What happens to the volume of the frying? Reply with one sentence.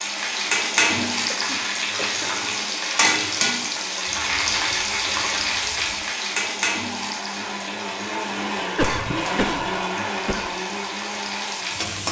The loudness of the frying goes down.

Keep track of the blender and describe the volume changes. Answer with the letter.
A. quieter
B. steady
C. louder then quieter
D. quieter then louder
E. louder
E.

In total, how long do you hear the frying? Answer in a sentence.
You can hear the frying for 12 seconds altogether.